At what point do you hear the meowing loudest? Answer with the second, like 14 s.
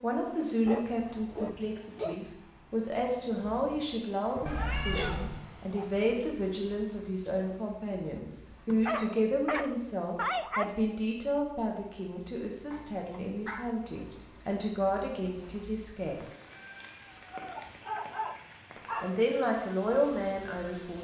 5 s.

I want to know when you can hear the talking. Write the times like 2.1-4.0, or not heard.
0.0-16.2, 19.0-21.0.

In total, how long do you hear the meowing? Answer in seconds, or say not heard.
3 s.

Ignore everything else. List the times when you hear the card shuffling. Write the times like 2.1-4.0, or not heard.
not heard.